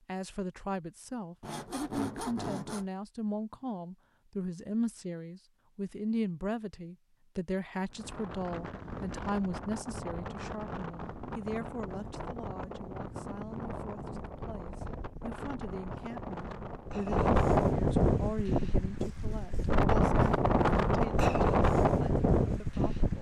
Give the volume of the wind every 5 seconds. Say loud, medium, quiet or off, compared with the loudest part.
off, quiet, quiet, loud, loud.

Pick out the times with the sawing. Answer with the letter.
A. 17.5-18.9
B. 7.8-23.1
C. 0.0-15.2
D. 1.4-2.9
D.